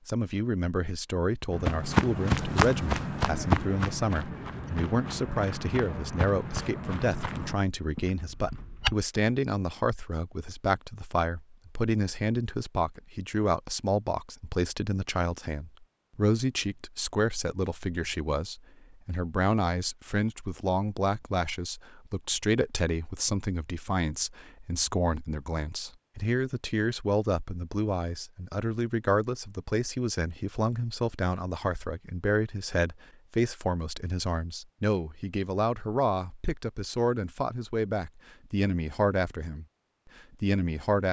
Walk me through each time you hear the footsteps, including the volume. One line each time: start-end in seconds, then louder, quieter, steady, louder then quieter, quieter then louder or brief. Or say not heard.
1.5-8.9 quieter.